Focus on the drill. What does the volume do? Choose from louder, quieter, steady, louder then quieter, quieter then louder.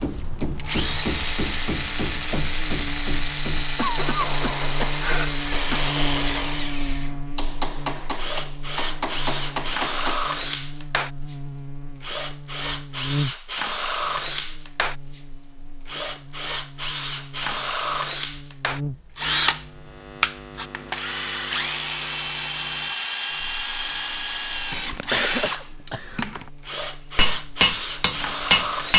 steady.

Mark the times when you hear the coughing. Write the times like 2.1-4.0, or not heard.
3.8-5.8, 24.9-26.4.